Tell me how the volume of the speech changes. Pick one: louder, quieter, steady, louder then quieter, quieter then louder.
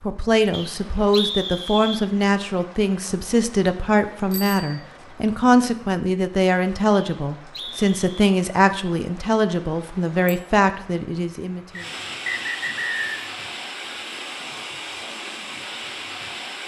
steady.